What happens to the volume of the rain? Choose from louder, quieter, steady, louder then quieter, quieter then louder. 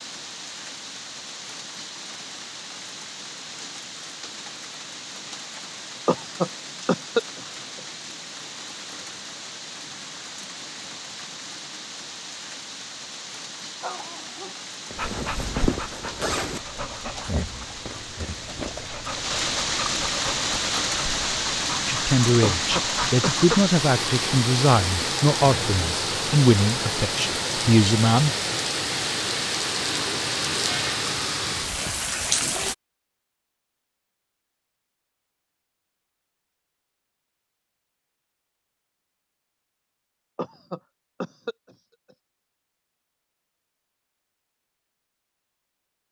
louder.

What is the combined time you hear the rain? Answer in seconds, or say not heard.
33 s.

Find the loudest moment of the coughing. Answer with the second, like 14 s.
7 s.